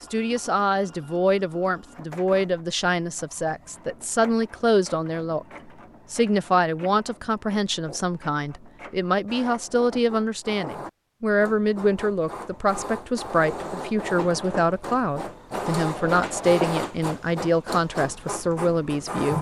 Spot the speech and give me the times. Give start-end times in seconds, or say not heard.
0.0-5.5, 6.1-19.3.